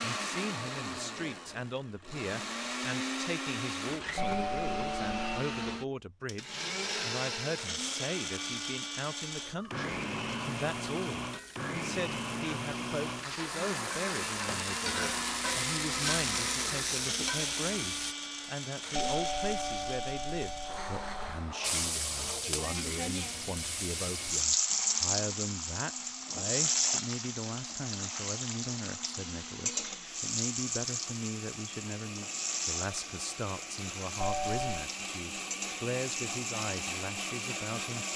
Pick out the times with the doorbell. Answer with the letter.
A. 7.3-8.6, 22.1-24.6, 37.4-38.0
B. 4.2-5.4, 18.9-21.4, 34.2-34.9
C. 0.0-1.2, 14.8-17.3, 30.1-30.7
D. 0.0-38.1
B.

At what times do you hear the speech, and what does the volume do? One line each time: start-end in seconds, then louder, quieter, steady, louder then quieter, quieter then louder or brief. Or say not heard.
0.0-38.1 steady.